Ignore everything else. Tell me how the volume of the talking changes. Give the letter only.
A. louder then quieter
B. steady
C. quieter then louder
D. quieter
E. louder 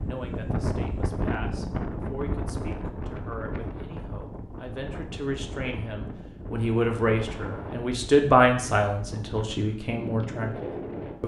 A.